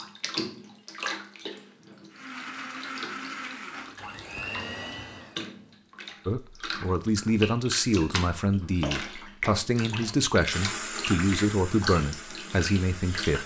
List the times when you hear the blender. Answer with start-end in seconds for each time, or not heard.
2.1-5.9, 10.5-13.4.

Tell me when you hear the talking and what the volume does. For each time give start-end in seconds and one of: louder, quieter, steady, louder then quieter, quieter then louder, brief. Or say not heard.
6.2-13.4 steady.